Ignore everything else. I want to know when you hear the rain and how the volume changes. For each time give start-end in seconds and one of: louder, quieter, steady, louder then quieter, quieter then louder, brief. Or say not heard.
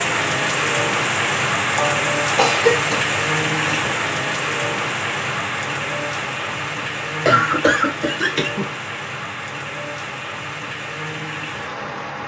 0.0-12.2 quieter.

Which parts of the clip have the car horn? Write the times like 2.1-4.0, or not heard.
not heard.